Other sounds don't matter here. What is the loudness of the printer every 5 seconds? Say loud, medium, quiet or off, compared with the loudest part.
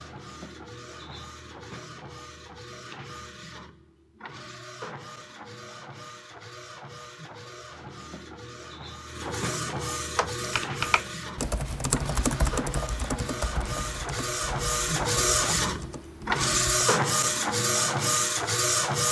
quiet, quiet, medium, loud.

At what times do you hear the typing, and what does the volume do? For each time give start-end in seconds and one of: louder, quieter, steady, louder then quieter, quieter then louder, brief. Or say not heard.
10.2-16.9 quieter.